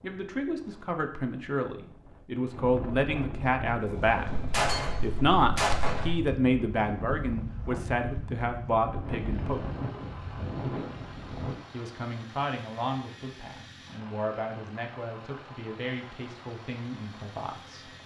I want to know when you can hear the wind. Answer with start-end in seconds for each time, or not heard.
0.0-11.6.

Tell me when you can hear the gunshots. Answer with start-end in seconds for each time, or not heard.
4.2-6.2.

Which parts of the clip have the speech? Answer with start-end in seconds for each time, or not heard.
0.0-9.7, 11.7-17.9.